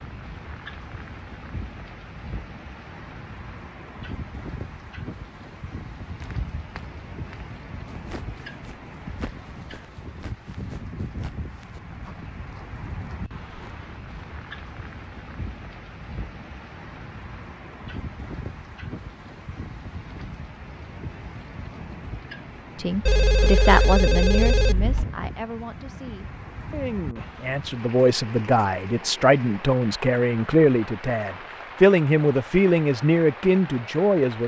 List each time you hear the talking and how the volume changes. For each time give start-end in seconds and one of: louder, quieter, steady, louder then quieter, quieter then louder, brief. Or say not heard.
22.8-34.4 quieter then louder.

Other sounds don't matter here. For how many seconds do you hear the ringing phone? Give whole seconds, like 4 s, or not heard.
2 s.